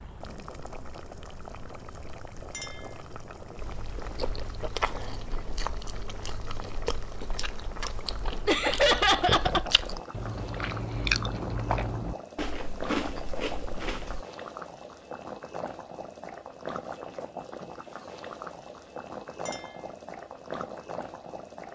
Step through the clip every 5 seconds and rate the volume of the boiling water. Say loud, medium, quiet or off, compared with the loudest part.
medium, loud, loud, loud, loud.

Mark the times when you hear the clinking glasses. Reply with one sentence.
You can hear the clinking glasses from 2.5 to 3.0 s and from 19.4 to 19.9 s.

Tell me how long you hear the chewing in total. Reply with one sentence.
You can hear the chewing for 11 seconds altogether.